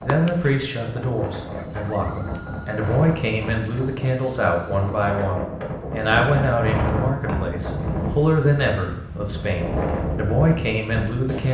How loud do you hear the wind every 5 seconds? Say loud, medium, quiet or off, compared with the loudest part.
medium, loud, loud.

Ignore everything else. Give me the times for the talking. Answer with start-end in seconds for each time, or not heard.
0.0-11.4.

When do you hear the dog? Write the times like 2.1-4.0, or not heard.
not heard.